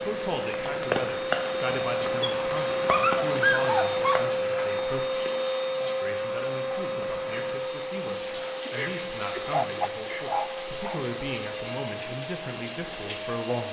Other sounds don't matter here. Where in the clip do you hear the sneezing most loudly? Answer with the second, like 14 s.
9 s.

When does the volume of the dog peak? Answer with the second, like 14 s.
4 s.